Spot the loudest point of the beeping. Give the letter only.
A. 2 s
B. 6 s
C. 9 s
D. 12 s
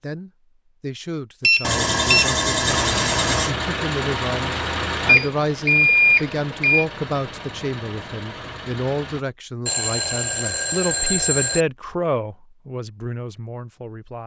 B.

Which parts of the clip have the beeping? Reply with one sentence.
You can hear the beeping from 1.4 to 2.3 s, from 5.0 to 6.8 s and from 9.7 to 11.7 s.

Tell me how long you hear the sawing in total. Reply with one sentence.
The sawing can be heard for 2 seconds in total.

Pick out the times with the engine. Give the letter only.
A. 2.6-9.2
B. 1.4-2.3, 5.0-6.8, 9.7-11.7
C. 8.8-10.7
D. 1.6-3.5
A.